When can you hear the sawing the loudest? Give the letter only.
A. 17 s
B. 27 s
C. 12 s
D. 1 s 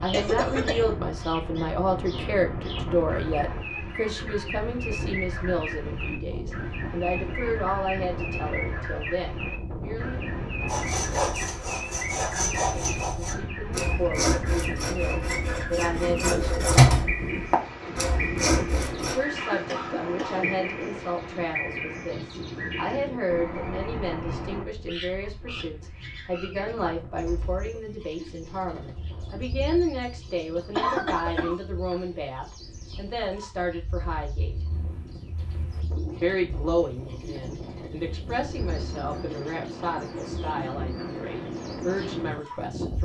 A.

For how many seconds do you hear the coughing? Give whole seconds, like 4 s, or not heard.
3 s.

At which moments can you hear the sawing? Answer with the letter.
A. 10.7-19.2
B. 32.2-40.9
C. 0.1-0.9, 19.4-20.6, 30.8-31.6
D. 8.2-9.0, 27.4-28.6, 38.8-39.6
A.